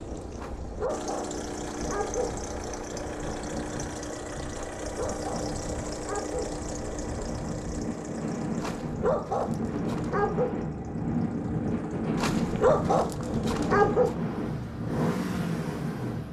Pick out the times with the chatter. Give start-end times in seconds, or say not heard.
not heard.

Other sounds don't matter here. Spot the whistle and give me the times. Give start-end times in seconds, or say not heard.
not heard.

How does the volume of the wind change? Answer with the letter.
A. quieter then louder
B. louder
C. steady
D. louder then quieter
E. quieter
B.